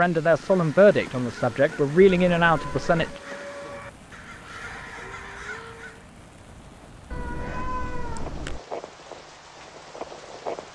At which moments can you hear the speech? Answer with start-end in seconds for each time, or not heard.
0.0-3.0.